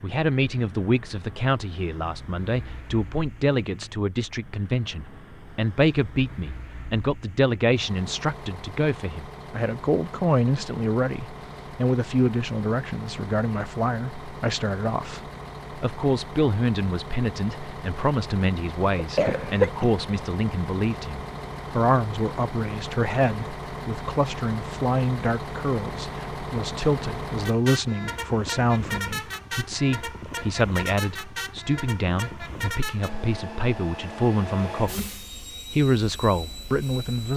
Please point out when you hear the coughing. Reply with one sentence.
The coughing can be heard from 18.9 to 20.1 s.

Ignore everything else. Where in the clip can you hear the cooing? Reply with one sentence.
You can't hear the cooing here.